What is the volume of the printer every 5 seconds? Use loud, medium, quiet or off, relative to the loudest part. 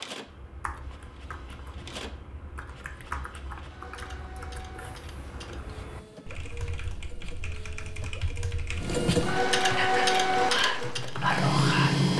quiet, medium, loud.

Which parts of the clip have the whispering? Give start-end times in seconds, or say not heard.
9.8-12.1.